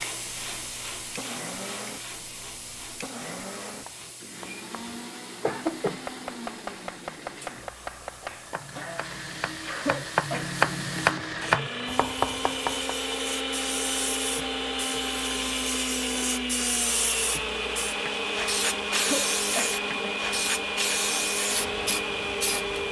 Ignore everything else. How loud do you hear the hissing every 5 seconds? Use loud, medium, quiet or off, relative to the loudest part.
medium, quiet, medium, loud, loud.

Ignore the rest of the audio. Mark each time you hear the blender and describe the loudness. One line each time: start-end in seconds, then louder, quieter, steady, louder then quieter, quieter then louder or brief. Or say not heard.
0.0-22.8 louder.